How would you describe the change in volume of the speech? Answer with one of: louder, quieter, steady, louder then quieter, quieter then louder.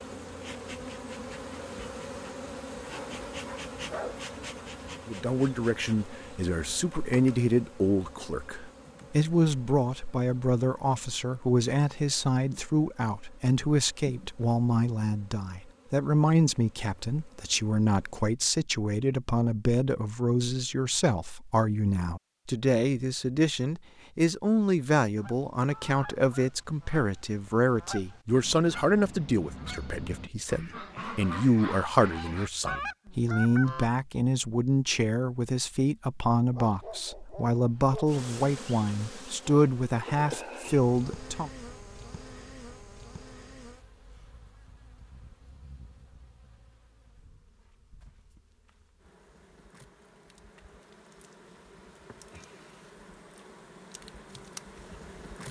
steady.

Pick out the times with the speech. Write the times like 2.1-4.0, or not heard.
5.0-41.5.